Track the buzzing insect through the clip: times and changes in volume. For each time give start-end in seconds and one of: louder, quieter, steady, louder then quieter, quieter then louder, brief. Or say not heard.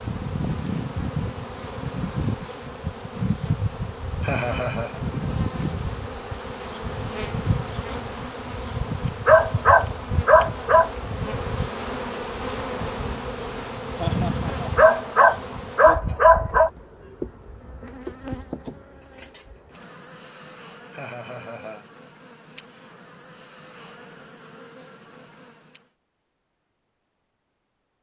0.0-25.9 quieter.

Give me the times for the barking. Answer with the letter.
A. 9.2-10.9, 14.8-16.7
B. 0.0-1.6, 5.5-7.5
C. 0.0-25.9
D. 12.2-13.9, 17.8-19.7
A.